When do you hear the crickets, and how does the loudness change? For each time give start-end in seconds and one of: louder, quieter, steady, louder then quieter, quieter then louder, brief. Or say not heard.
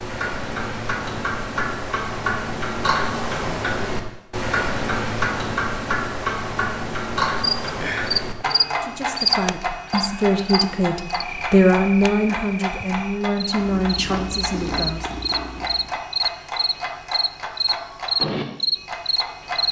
7.6-19.6 quieter then louder.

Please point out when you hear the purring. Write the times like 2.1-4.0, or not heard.
13.6-16.0.